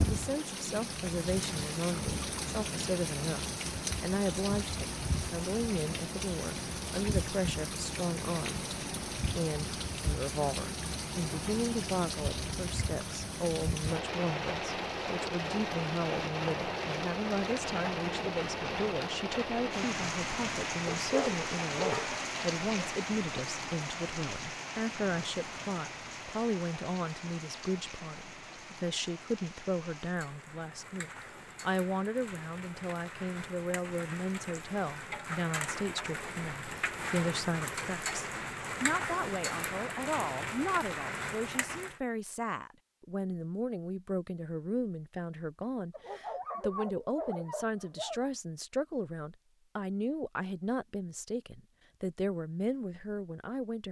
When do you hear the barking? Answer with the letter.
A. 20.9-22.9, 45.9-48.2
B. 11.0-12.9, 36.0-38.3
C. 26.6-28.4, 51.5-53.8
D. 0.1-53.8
A.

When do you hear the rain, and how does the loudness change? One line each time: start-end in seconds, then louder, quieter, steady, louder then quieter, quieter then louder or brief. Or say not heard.
0.0-42.0 quieter then louder.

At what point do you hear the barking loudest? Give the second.
22 s.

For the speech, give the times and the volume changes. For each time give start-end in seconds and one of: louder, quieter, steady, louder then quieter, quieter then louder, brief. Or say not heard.
0.1-53.8 steady.